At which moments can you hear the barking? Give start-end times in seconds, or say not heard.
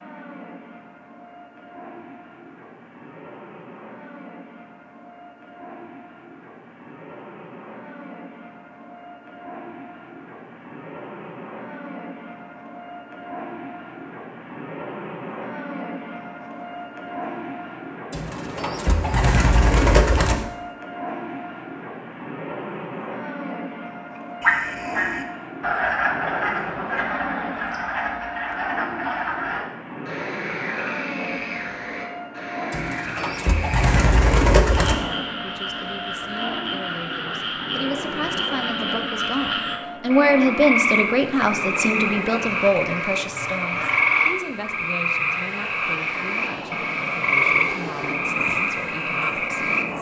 not heard.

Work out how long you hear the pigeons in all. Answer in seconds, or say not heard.
5 s.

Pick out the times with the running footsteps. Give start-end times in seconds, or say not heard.
not heard.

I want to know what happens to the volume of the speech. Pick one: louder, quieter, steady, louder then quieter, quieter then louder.
louder then quieter.